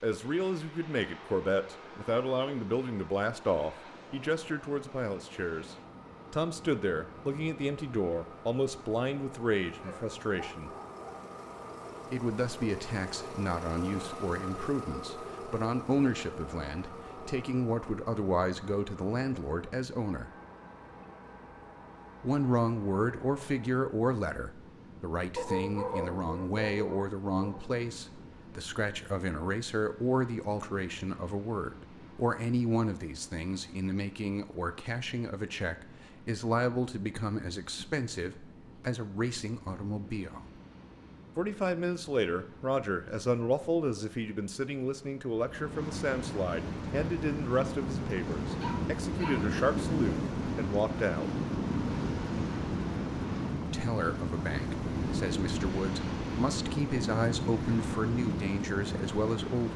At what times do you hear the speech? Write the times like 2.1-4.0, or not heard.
0.0-10.7, 12.1-20.3, 22.2-40.5, 41.4-51.3, 53.7-59.7.